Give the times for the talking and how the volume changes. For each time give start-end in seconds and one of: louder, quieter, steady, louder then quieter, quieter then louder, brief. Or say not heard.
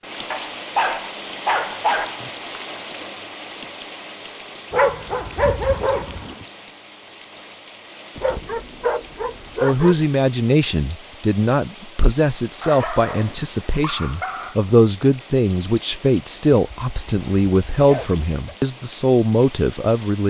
9.6-20.2 steady.